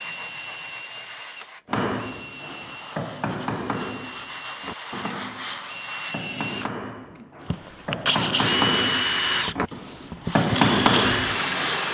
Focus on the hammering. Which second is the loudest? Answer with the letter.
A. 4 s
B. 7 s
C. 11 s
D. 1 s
C.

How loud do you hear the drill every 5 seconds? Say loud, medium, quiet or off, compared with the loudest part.
quiet, loud, loud.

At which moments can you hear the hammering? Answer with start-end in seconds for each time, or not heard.
1.7-11.8.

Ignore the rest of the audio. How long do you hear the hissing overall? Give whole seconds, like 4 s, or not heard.
8 s.